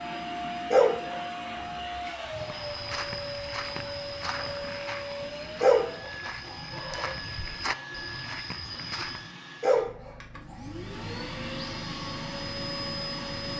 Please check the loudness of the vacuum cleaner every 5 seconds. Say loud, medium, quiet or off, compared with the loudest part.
loud, medium, loud.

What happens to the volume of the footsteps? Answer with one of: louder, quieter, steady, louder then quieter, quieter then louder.
quieter then louder.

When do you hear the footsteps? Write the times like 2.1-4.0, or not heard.
2.4-9.3.